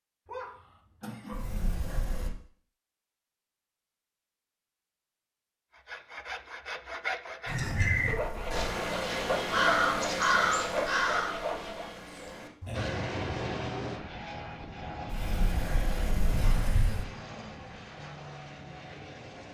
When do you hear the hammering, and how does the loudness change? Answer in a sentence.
The hammering can't be heard in this clip.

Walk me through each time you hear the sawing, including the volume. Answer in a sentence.
You can hear the sawing from 5.8 to 12.0 s, at a steady volume.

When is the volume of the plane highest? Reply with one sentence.
The loudest moment of the plane is at 13 seconds.